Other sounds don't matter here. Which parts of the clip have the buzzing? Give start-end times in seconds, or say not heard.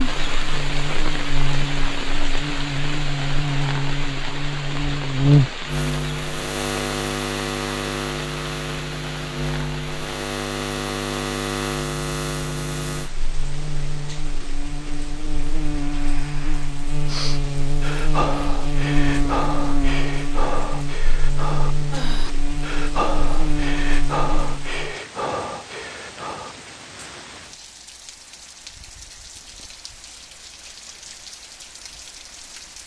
0.0-24.9.